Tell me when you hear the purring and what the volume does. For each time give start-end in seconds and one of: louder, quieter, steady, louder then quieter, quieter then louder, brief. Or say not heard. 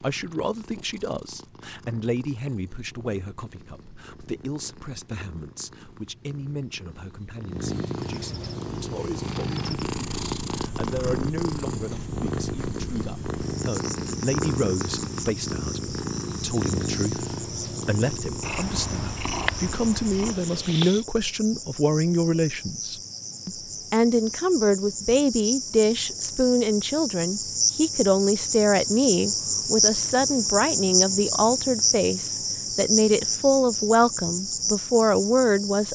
0.0-21.1 louder.